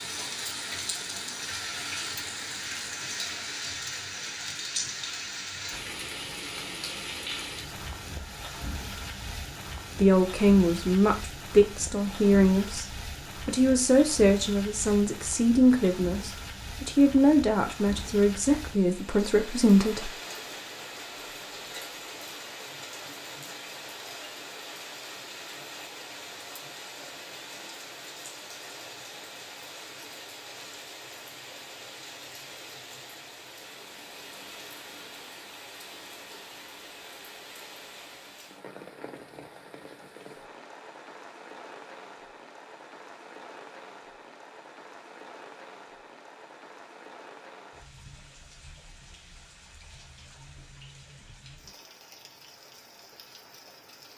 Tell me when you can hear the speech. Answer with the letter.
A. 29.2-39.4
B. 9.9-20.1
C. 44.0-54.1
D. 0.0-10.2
B.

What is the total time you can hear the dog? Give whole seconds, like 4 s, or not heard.
not heard.